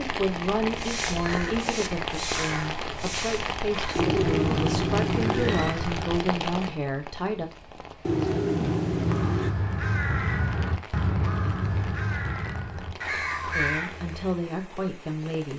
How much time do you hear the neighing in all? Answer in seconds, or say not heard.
3 s.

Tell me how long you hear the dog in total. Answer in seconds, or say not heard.
not heard.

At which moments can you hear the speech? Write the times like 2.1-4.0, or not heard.
0.0-7.5, 13.6-15.5.